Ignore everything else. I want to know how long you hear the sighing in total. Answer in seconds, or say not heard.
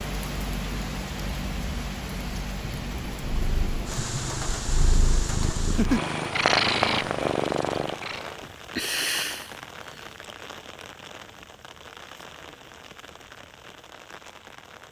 2 s.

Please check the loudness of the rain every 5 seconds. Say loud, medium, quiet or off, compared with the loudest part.
loud, loud, medium.